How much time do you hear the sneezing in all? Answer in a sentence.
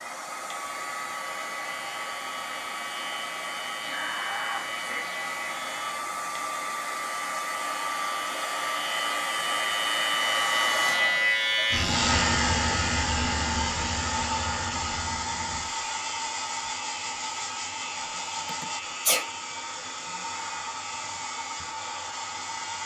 You can hear the sneezing for 2 seconds altogether.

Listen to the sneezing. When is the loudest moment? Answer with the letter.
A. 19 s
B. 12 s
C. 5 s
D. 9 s
A.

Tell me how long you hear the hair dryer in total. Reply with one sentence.
The hair dryer can be heard for 23 seconds in total.